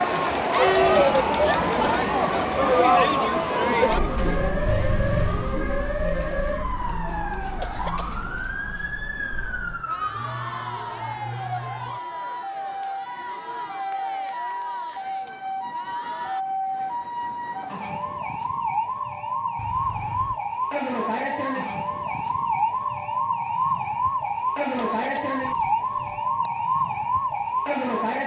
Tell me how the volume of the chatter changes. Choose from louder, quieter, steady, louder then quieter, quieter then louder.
quieter.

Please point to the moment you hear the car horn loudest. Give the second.
5 s.